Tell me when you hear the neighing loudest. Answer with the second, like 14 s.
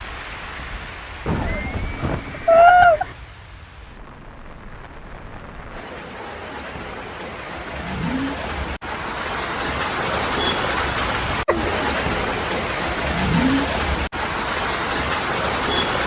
3 s.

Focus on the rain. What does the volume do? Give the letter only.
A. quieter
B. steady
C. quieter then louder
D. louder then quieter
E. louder
E.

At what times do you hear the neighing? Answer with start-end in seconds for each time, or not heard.
1.2-3.1.